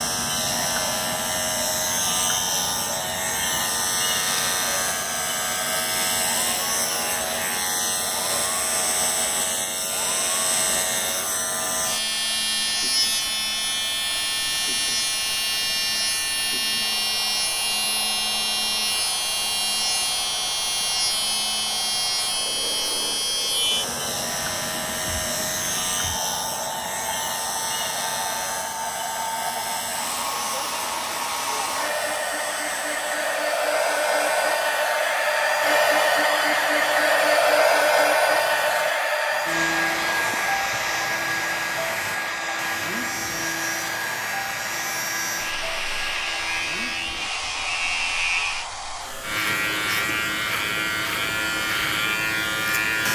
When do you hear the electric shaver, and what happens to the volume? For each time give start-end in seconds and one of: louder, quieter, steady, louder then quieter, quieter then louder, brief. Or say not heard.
0.0-53.1 quieter then louder.